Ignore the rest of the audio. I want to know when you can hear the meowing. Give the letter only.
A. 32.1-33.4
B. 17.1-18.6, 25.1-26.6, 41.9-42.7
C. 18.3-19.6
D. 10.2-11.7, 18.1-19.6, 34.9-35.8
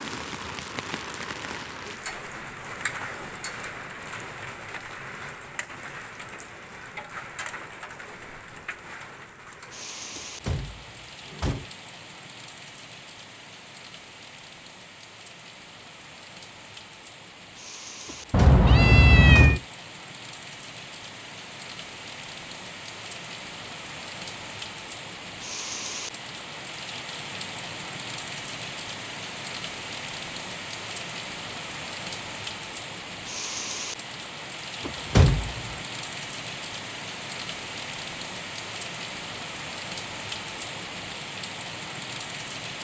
C.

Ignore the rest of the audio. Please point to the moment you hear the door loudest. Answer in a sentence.
The volume of the door peaks at 35 seconds.